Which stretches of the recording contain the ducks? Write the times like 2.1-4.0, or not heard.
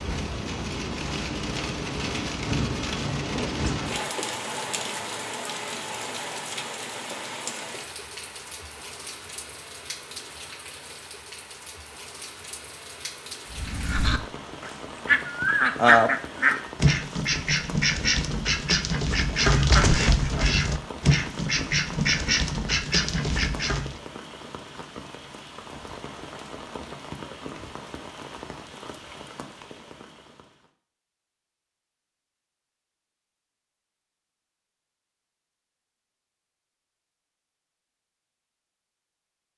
13.5-24.0.